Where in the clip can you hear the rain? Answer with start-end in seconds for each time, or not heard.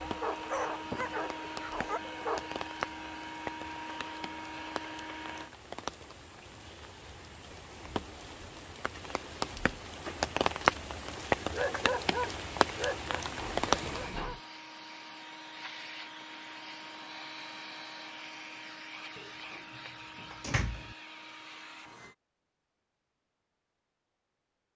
0.0-14.2.